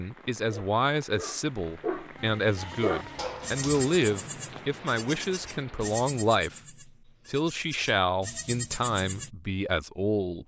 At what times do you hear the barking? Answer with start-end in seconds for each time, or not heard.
0.0-4.1.